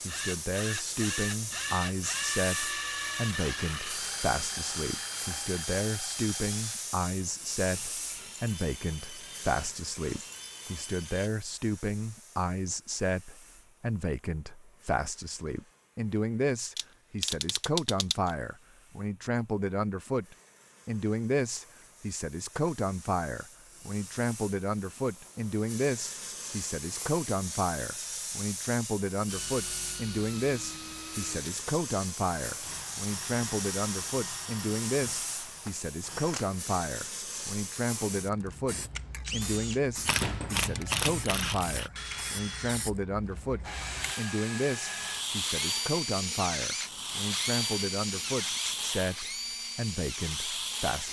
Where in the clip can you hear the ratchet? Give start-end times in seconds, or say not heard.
16.8-18.3, 40.0-41.9.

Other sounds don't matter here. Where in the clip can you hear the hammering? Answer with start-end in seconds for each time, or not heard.
not heard.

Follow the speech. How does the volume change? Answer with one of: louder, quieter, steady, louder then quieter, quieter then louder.
steady.